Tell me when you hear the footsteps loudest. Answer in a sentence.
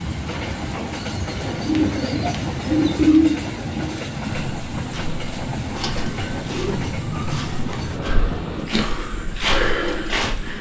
The loudest moment of the footsteps is at 10 seconds.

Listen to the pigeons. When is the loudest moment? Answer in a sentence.
The loudest moment of the pigeons is at 3 seconds.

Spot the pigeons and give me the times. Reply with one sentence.
The pigeons can be heard from 1.1 to 3.5 s and from 5.8 to 7.8 s.